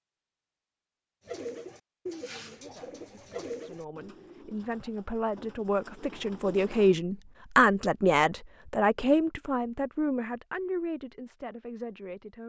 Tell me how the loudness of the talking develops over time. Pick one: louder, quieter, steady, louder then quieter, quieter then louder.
louder then quieter.